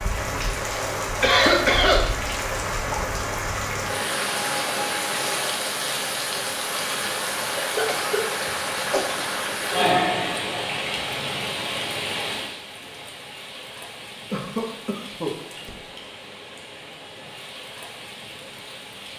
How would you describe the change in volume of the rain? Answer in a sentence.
The volume of the rain goes down.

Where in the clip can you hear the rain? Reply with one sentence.
You can hear the rain from 0.0 to 19.1 s.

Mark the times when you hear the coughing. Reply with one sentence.
The coughing can be heard from 1.2 to 2.0 s, from 7.6 to 9.1 s and from 14.3 to 15.3 s.